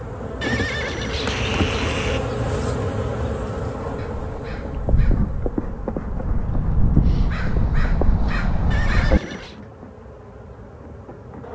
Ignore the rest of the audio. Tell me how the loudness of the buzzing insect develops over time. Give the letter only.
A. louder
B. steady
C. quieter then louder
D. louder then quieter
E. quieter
E.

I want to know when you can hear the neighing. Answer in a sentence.
The neighing can be heard from 0.4 to 2.3 s and from 8.7 to 9.6 s.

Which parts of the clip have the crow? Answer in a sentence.
The crow can be heard from 3.8 to 9.2 s.